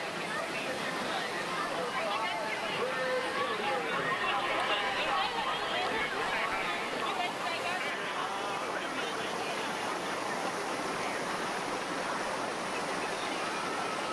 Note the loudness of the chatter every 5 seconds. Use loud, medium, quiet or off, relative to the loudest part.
loud, loud, medium.